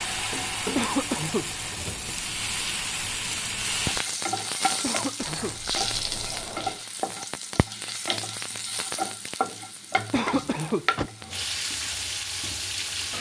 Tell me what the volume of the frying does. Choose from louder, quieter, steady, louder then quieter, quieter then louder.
steady.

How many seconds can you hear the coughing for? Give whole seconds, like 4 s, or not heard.
2 s.